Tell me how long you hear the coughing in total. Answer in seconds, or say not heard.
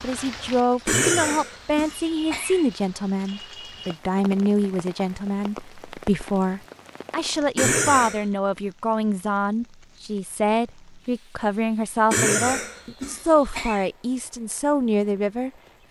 4 s.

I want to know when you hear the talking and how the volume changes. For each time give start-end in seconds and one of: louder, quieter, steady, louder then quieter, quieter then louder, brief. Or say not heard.
0.0-15.8 steady.